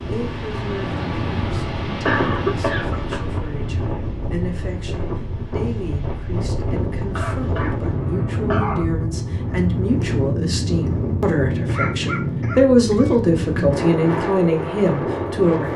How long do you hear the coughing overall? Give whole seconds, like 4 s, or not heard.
4 s.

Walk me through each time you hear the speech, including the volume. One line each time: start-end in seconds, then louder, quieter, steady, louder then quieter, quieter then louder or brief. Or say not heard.
0.0-15.7 louder.